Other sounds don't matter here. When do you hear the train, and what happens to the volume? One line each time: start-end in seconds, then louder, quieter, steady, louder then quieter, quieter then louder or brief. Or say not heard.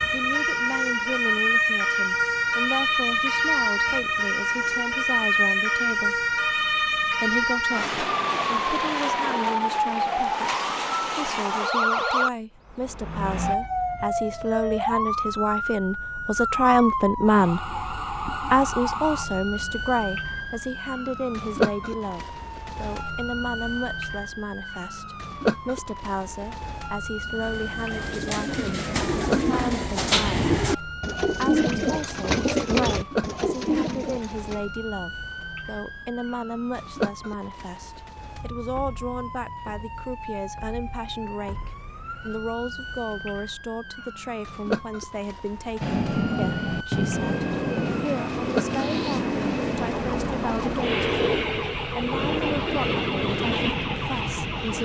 45.8-54.8 steady.